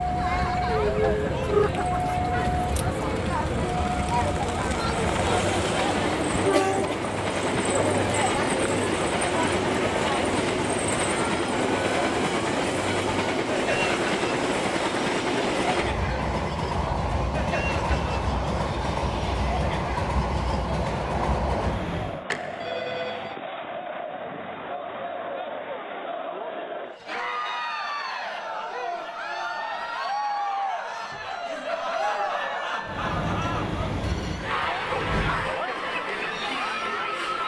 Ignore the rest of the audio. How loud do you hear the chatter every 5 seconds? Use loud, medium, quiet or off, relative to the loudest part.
loud, loud, loud, medium, medium, loud, loud, loud.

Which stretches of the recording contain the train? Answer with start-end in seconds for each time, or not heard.
0.0-22.2, 32.8-35.5.